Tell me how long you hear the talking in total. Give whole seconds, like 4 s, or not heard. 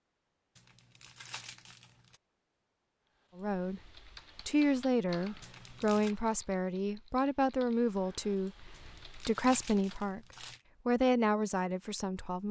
7 s.